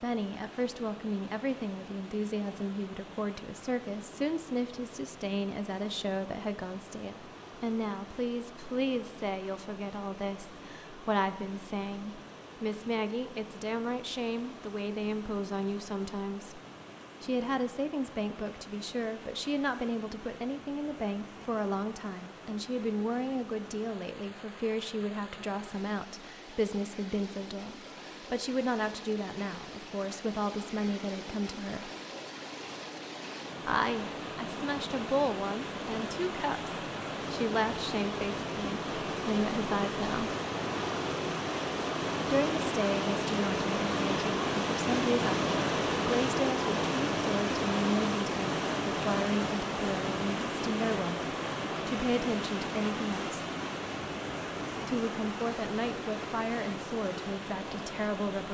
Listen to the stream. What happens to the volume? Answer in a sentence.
The volume of the stream goes up.